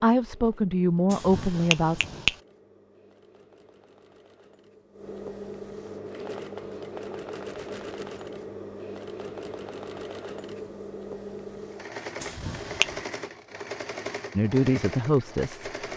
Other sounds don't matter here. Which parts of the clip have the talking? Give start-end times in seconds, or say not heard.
0.0-2.0, 14.3-15.9.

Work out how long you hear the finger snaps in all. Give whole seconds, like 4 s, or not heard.
2 s.